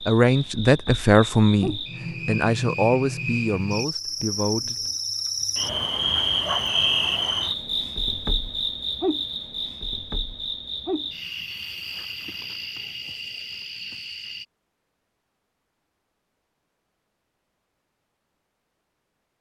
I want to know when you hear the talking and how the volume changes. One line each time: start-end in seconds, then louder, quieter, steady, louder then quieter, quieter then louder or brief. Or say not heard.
0.0-4.8 quieter.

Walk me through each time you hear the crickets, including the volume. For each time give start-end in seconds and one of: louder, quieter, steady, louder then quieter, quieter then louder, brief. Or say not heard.
0.0-14.4 louder then quieter.